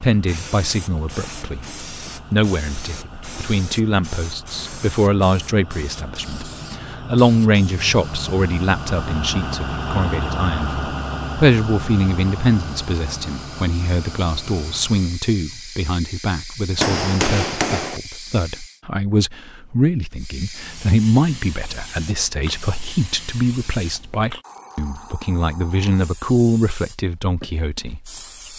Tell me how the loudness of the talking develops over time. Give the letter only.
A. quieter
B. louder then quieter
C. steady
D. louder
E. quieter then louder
C.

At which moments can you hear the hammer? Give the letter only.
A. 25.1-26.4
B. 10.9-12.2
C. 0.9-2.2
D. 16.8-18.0
D.